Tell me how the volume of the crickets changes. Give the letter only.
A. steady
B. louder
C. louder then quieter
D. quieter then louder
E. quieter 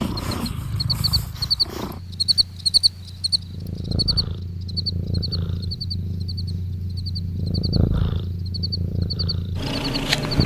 E.